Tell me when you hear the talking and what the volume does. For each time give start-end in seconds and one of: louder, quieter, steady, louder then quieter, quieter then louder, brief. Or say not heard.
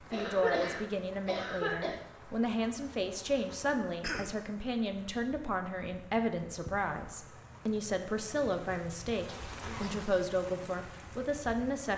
0.1-11.9 steady.